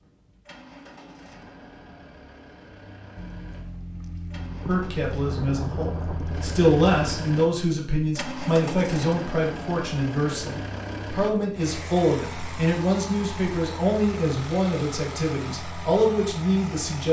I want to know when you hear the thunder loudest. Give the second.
6 s.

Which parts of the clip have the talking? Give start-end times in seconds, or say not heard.
4.7-17.0.